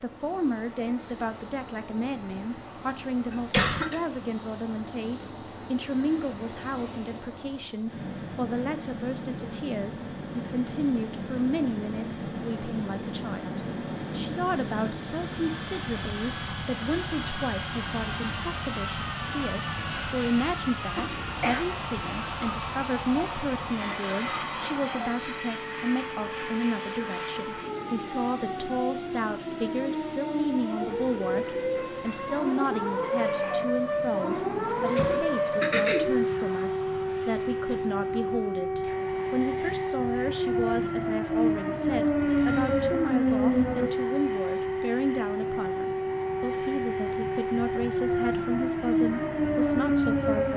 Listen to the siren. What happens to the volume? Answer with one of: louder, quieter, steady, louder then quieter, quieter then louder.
louder.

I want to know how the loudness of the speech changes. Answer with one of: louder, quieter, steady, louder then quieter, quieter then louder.
steady.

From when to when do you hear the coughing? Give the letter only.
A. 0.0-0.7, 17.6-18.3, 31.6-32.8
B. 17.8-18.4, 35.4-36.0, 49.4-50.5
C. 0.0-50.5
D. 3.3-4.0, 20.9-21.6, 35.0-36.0
D.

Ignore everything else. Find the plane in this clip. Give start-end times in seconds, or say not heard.
0.0-50.5.